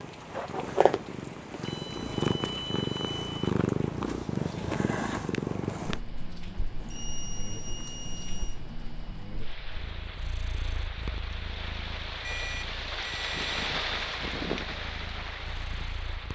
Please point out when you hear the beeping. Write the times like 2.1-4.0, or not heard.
1.6-3.4, 6.8-8.6, 12.2-13.5.